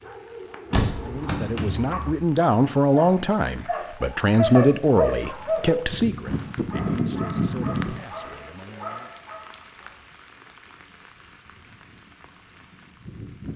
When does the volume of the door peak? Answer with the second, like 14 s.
1 s.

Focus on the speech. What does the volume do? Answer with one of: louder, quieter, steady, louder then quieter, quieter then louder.
quieter.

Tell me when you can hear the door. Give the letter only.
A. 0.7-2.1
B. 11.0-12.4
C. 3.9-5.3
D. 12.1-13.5
A.